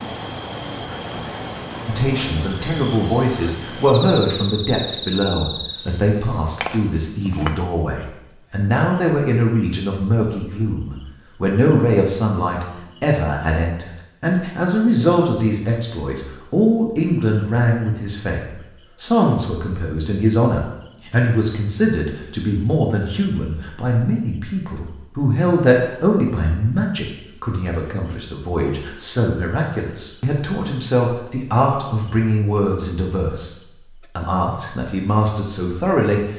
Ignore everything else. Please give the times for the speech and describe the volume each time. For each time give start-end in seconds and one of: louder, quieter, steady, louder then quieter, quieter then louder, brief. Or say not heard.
1.9-36.3 steady.